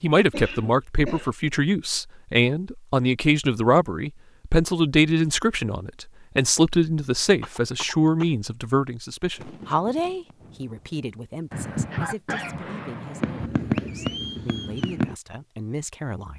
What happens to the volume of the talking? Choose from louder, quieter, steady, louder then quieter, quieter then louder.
quieter.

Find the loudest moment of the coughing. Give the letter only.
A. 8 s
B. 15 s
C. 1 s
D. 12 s
D.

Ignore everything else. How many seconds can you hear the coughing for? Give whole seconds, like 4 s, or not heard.
4 s.